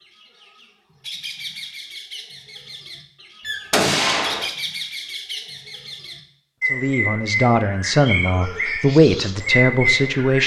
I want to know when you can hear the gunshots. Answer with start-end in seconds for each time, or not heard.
3.4-4.5.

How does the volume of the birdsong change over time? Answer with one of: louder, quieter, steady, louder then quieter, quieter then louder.
quieter then louder.